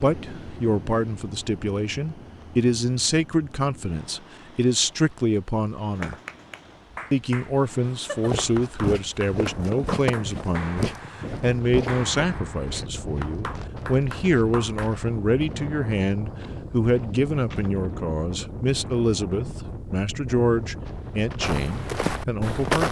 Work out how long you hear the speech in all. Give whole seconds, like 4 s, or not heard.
22 s.